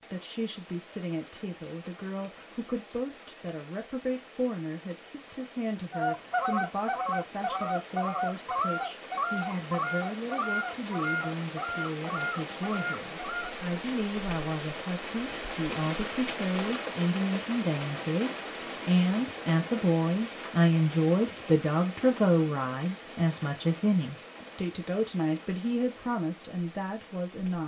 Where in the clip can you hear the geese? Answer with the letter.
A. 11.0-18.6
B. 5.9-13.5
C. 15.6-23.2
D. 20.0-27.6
B.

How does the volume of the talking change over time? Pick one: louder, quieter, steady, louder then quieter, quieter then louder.
louder.